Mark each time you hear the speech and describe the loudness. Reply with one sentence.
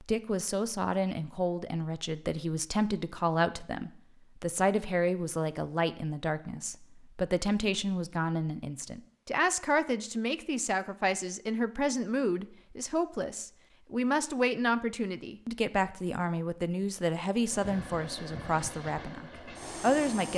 The speech can be heard from 0.0 to 20.3 s, at a steady volume.